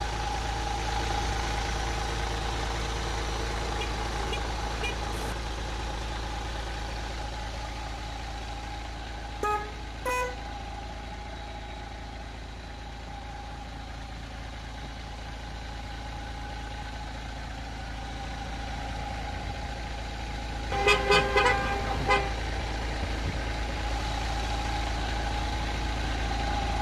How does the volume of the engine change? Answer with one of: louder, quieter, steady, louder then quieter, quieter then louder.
quieter then louder.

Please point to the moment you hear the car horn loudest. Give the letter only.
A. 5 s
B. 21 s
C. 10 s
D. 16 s
B.